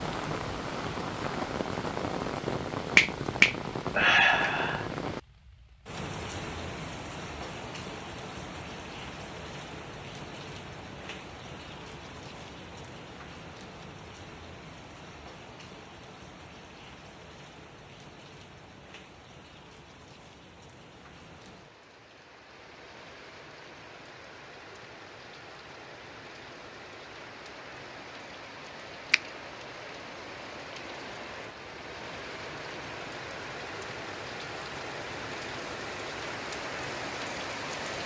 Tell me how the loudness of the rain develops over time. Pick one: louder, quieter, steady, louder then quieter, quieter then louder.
quieter then louder.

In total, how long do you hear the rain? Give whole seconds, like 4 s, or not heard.
38 s.